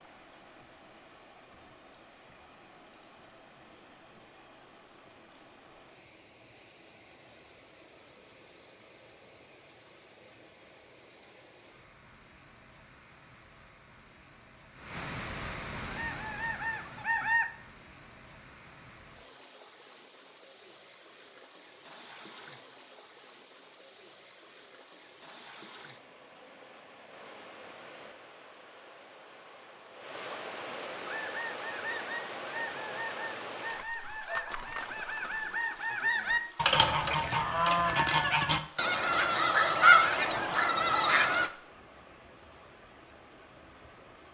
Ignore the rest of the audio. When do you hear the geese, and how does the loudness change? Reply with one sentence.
The geese can be heard briefly from 15.8 to 17.4 s; and from 31.0 to 41.5 s, getting louder.